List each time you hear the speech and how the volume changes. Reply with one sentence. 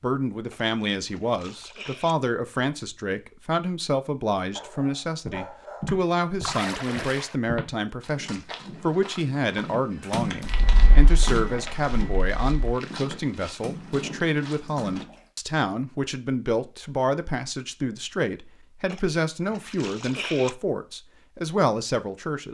The speech can be heard from 0.0 to 22.4 s, at a steady volume.